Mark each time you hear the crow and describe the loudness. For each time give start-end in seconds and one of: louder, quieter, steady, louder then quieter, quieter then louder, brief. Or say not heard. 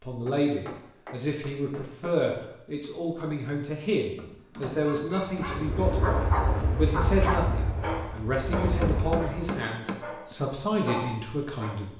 not heard.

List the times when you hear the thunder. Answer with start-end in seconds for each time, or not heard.
not heard.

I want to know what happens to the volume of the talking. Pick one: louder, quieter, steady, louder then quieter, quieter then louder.
steady.